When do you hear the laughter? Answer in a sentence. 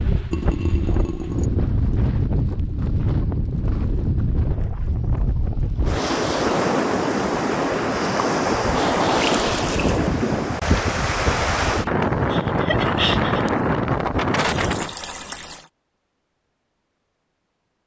You can hear the laughter from 12.3 to 13.5 s.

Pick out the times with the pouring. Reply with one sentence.
The pouring can be heard from 0.3 to 1.5 s, from 9.1 to 9.9 s and from 14.3 to 15.7 s.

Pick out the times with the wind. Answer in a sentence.
The wind can be heard from 0.0 to 14.9 s.